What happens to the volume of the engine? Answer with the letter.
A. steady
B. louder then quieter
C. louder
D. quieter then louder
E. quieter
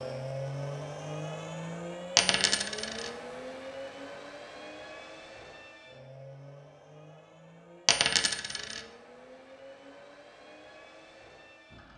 E.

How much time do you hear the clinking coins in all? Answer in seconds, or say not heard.
2 s.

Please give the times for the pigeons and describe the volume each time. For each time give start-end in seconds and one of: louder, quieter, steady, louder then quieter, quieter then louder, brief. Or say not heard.
not heard.